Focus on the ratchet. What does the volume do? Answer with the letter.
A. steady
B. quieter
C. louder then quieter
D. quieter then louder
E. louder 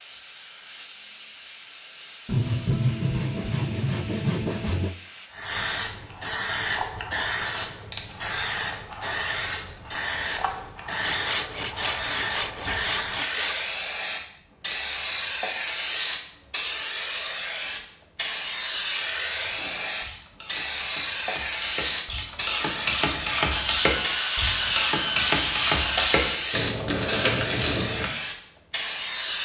E.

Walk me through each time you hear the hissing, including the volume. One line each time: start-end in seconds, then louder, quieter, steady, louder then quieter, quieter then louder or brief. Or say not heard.
0.0-29.3 louder.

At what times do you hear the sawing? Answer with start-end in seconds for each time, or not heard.
2.2-5.0, 11.0-13.6, 23.5-26.4.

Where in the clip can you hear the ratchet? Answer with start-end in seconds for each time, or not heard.
19.4-28.1.